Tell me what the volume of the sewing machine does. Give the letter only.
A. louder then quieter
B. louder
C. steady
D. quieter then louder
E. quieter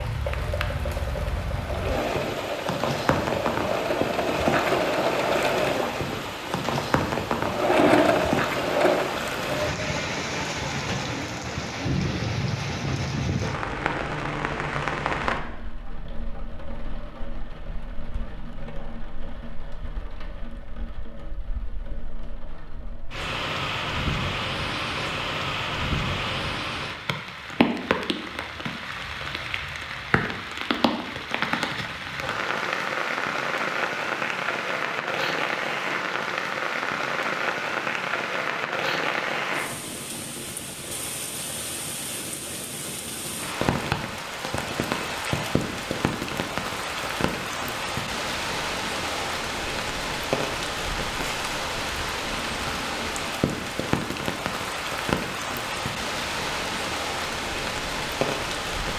B.